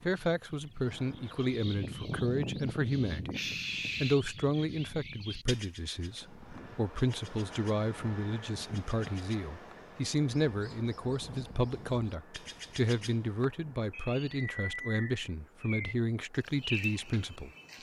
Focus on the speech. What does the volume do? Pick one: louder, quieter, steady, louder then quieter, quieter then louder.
steady.